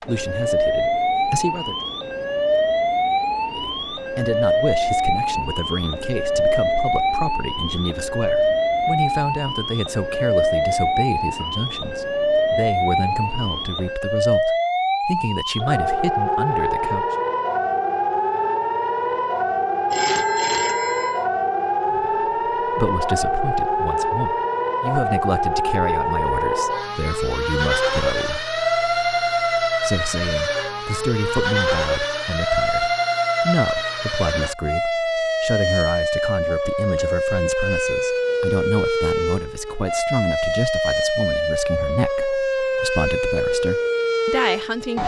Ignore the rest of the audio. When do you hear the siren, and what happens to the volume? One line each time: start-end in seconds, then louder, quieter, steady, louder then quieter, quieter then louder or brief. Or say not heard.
0.0-45.0 steady.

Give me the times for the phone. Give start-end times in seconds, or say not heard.
19.9-21.2.